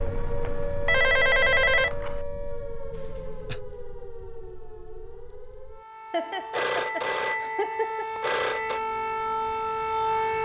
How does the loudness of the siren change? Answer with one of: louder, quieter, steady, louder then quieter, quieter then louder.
quieter then louder.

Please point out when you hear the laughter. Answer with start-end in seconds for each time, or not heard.
2.9-3.6, 6.1-8.1.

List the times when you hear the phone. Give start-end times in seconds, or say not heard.
0.4-2.2, 6.5-8.8.